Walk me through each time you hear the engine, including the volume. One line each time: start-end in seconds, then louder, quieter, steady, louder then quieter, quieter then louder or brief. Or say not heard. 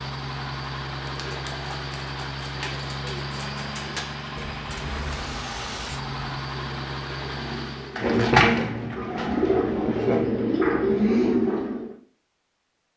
0.0-8.1 steady.